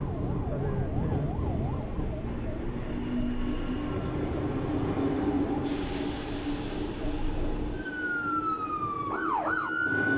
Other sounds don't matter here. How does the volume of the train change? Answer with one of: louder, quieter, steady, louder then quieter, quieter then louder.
louder then quieter.